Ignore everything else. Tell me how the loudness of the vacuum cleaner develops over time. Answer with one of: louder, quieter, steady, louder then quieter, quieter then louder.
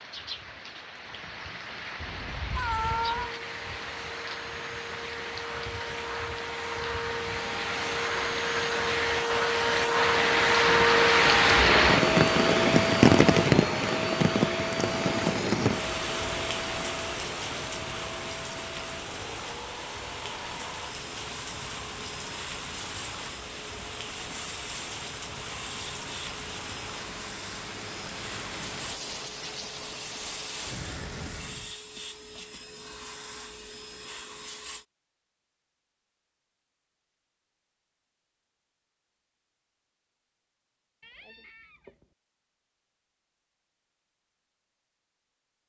louder then quieter.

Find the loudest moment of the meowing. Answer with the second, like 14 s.
3 s.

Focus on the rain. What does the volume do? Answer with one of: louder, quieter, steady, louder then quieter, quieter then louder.
louder then quieter.